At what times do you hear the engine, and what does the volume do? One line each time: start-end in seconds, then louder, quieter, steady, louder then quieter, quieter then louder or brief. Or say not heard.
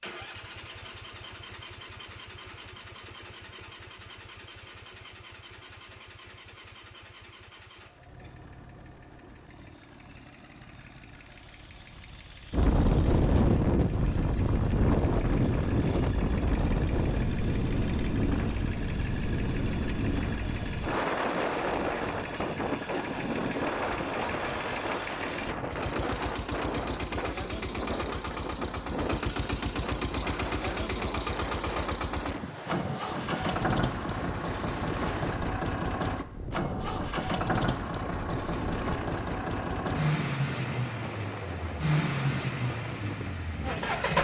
0.0-44.2 louder.